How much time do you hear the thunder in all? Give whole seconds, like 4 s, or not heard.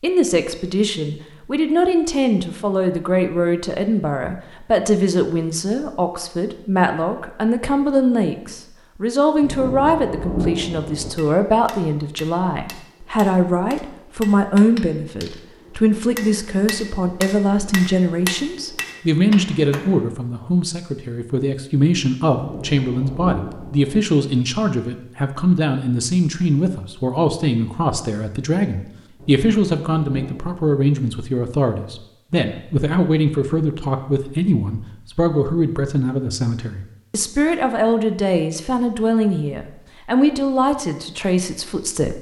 5 s.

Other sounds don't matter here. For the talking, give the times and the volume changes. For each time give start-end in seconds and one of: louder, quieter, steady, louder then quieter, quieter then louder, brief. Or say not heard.
0.0-42.1 steady.